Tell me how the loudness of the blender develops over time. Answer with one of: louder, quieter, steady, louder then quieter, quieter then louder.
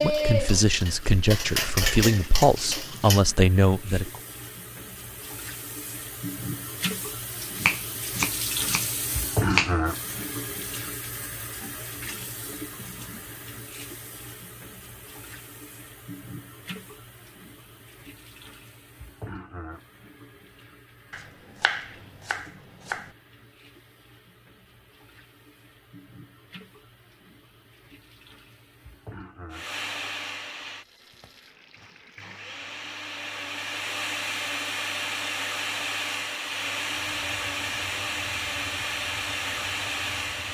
louder.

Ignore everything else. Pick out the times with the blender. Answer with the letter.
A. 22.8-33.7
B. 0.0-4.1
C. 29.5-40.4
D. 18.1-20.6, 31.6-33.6
C.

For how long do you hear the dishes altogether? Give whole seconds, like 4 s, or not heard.
3 s.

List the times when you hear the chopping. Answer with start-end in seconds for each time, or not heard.
7.5-10.1, 21.1-23.1.